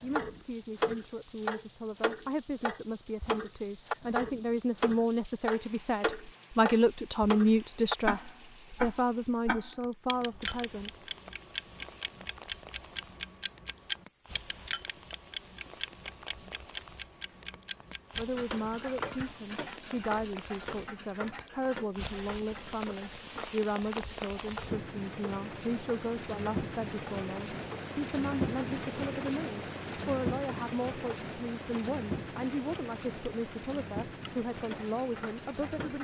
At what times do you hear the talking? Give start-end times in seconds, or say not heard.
0.0-10.9, 18.1-35.9.